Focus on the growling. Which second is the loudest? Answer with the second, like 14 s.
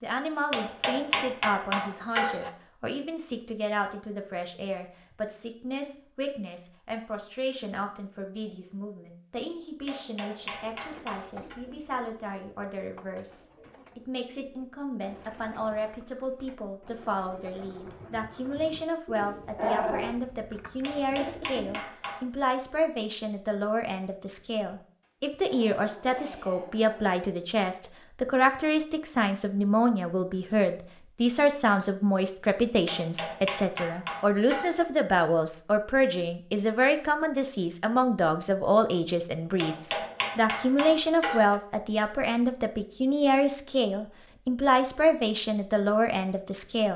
20 s.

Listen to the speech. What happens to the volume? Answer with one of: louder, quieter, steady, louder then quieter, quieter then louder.
louder.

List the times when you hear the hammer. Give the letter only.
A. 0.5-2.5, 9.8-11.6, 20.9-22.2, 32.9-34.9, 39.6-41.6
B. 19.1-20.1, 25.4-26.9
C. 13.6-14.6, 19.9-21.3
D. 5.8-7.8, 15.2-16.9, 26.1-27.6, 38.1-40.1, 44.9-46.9
A.